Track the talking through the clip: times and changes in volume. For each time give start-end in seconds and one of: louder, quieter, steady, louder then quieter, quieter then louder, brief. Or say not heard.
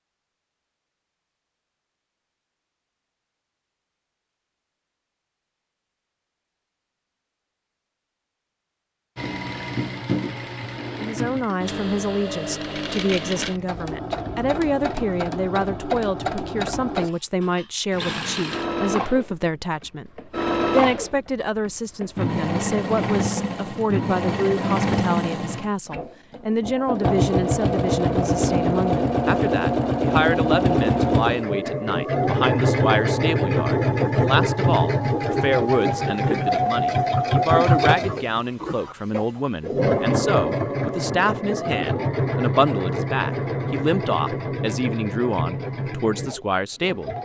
10.9-47.1 steady.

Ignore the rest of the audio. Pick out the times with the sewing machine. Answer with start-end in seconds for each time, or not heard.
9.2-47.2.